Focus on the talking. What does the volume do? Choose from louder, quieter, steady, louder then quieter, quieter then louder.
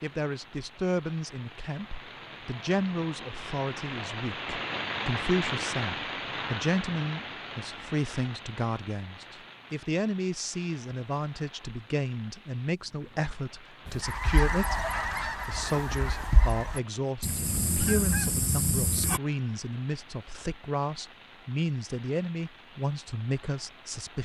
steady.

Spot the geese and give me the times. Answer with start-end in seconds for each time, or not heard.
13.8-19.2.